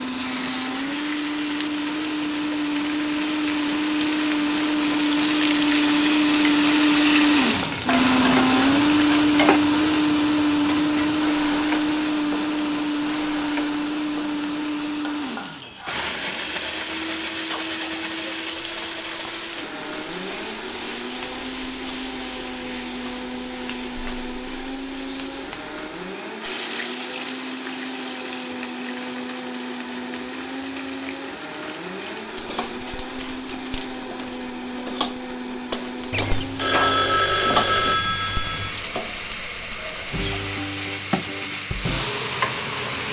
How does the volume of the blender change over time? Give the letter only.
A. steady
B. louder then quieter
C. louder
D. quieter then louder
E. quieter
E.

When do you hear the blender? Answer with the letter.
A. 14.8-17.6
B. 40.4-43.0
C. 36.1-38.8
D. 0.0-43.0
D.